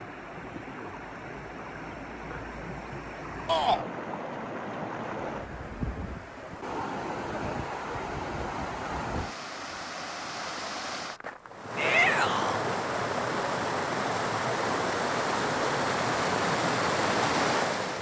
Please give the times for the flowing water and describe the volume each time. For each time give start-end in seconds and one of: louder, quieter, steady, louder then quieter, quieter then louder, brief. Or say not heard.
0.0-17.9 louder.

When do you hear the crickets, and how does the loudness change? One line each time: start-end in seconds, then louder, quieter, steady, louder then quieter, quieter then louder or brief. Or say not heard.
not heard.